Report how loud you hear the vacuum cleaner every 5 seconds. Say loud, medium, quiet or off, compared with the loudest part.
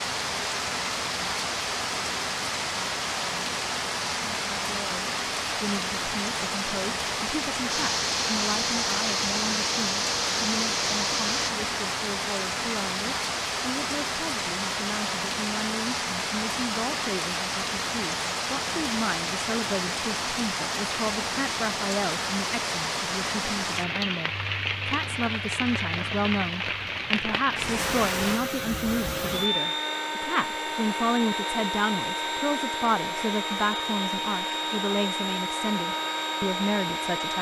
off, loud, loud, off, off, loud, loud, loud.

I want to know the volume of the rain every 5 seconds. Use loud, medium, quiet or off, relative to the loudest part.
loud, loud, loud, loud, loud, loud, off, off.